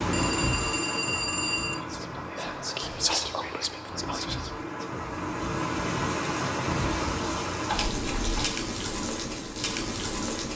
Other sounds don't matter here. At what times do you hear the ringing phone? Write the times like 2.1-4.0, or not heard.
0.1-1.8, 7.7-8.5.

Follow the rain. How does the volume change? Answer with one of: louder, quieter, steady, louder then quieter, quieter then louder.
quieter then louder.